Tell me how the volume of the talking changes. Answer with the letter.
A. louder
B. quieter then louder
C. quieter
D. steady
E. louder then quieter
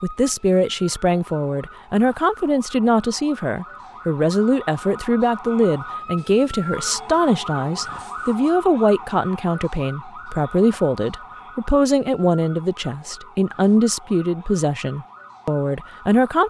D.